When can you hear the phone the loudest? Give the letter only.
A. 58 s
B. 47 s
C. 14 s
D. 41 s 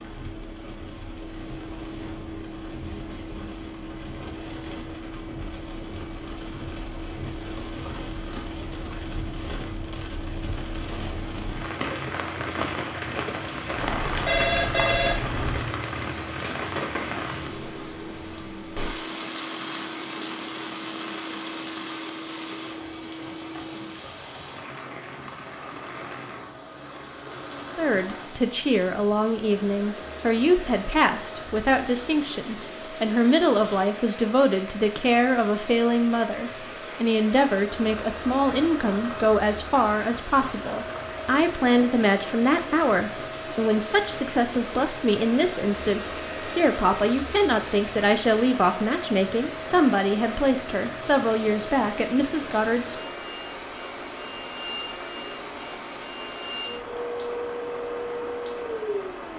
C.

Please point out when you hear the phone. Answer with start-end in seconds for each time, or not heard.
13.8-15.7.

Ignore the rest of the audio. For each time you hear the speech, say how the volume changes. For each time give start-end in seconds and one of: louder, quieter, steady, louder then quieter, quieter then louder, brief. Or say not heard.
27.8-53.1 steady.